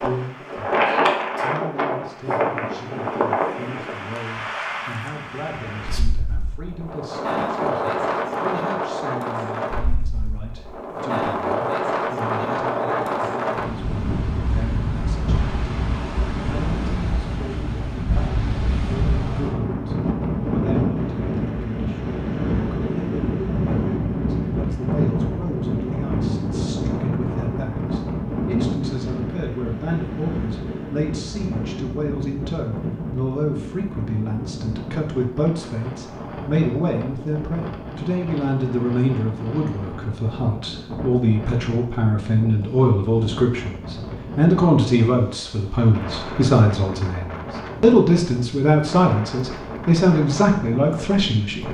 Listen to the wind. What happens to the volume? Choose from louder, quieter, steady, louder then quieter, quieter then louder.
quieter.